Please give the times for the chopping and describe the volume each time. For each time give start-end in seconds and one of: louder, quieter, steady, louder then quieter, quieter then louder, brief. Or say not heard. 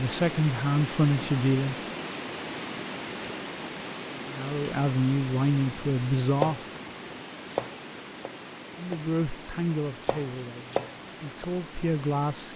6.3-11.4 quieter then louder.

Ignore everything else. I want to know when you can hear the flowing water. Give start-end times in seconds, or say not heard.
0.0-12.5.